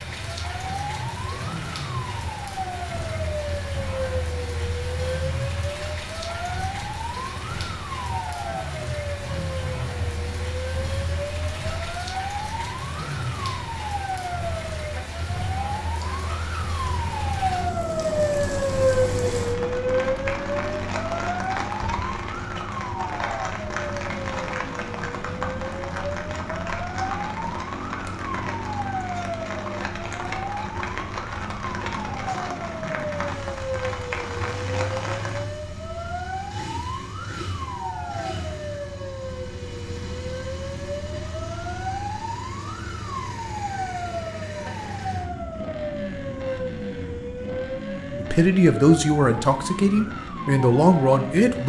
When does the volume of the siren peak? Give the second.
19 s.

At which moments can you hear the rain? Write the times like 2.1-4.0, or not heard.
0.0-35.5.